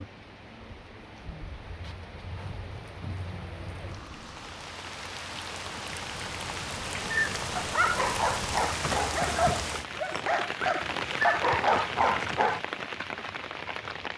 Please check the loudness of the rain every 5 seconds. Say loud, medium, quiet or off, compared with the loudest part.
medium, loud, loud.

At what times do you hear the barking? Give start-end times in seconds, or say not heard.
7.0-12.6.